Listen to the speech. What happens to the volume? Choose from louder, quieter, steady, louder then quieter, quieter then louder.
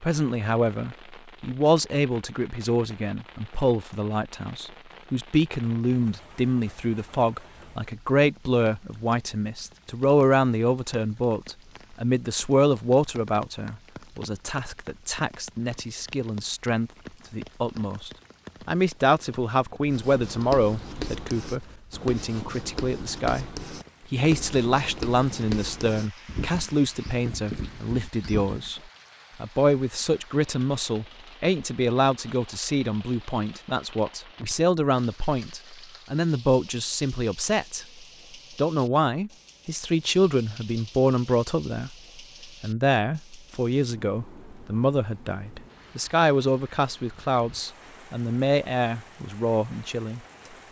steady.